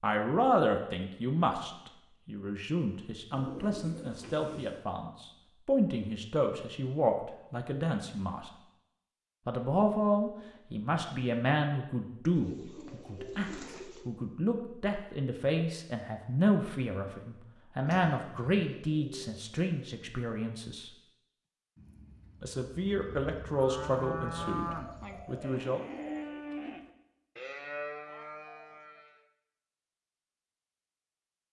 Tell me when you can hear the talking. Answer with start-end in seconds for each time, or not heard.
0.0-8.5, 9.4-20.9, 22.4-25.8.